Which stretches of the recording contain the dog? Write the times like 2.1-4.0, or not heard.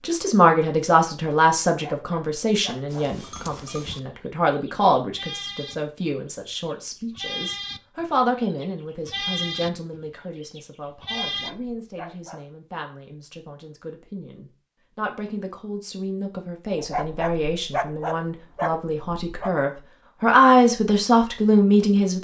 1.6-3.1, 11.0-12.4, 16.8-19.5.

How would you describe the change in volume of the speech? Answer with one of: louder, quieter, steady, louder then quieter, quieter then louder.
quieter then louder.